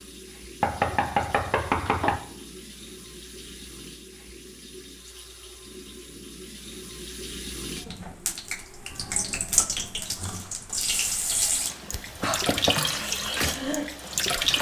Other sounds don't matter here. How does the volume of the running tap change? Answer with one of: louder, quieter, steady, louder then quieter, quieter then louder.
louder.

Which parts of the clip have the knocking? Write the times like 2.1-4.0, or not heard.
0.6-2.2, 11.9-12.8.